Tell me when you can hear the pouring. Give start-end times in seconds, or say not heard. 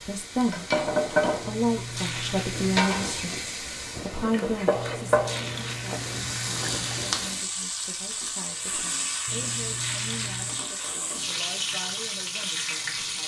1.4-2.9, 4.8-7.2, 9.2-10.7.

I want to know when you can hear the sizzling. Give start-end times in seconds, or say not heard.
0.0-13.2.